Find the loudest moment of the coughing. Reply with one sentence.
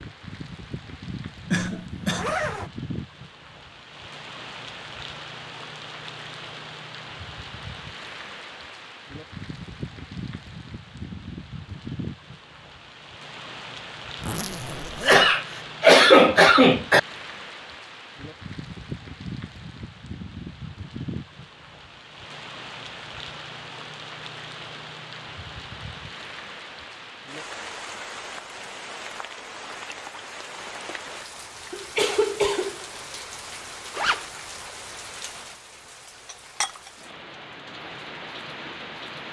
The loudest moment of the coughing is at 16 seconds.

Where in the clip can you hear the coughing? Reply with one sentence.
The coughing can be heard from 1.5 to 2.2 s, from 15.1 to 17.0 s and from 31.7 to 32.9 s.